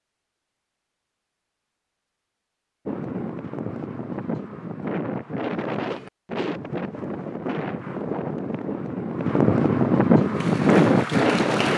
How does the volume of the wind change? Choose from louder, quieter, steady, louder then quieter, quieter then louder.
louder.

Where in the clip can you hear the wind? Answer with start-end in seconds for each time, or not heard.
2.9-11.7.